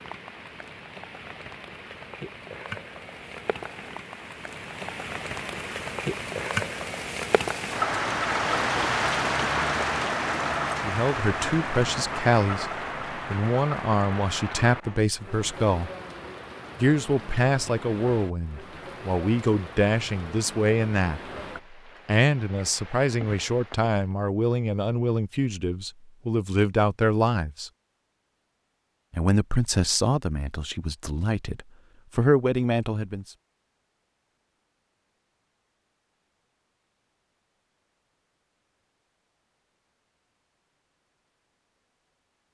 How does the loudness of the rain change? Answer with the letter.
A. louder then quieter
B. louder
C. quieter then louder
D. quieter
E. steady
A.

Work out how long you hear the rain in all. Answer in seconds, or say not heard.
24 s.